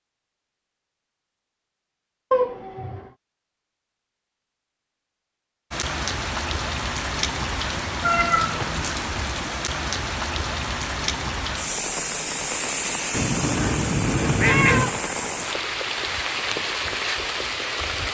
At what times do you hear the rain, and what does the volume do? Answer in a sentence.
The rain can be heard from 5.7 to 18.0 s, at a steady volume.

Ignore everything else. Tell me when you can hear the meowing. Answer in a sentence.
The meowing can be heard from 2.3 to 3.1 s, from 8.0 to 8.8 s and from 14.4 to 15.0 s.